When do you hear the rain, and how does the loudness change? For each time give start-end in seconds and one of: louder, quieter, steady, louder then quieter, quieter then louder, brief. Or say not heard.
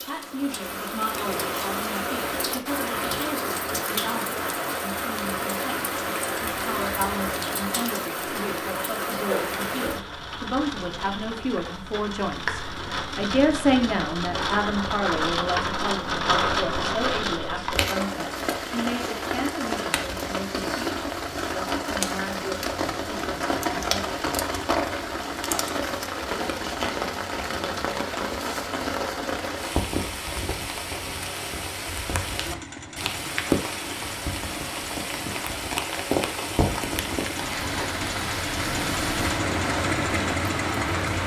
0.0-41.2 steady.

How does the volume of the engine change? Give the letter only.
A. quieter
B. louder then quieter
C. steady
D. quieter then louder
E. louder
E.